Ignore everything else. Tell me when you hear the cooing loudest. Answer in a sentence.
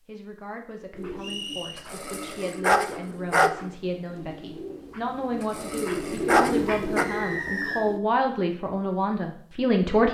The volume of the cooing peaks at 6 seconds.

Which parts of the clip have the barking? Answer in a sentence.
You can hear the barking from 1.9 to 3.5 s and from 5.4 to 7.0 s.